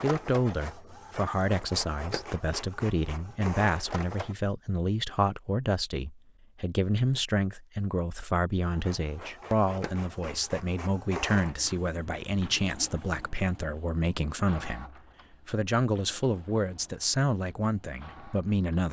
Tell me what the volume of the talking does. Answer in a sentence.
The loudness of the talking stays about the same.